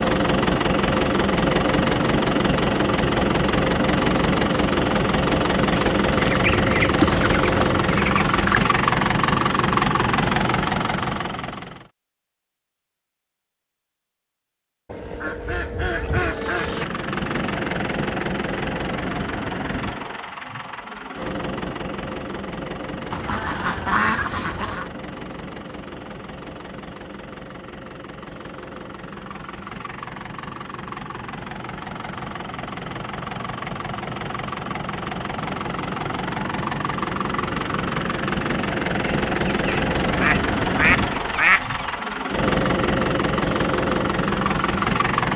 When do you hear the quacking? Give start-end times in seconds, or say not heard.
5.7-8.7, 14.8-16.9, 23.1-24.9, 39.0-41.8.